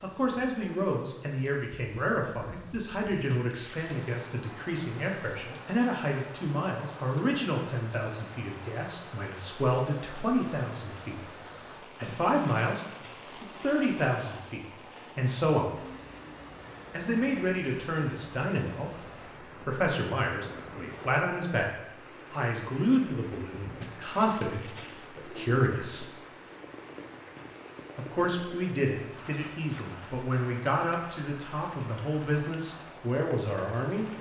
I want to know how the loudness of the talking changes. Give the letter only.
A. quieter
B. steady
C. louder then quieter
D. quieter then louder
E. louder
B.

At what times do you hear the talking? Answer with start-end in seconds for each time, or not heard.
0.0-11.4, 12.0-15.8, 16.9-26.1, 27.9-34.1.